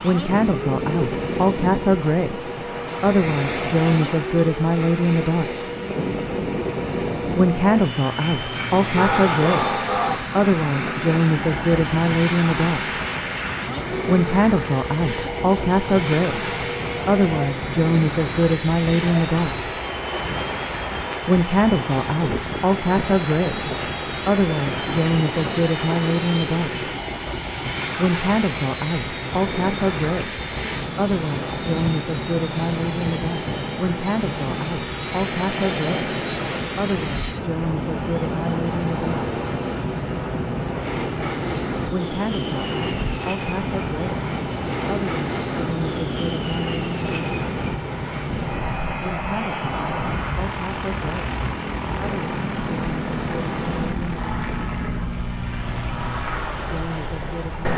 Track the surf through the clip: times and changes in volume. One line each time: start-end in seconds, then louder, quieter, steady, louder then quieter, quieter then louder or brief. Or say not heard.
0.0-57.7 steady.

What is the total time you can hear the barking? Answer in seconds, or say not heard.
2 s.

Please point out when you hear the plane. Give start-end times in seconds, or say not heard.
0.0-57.7.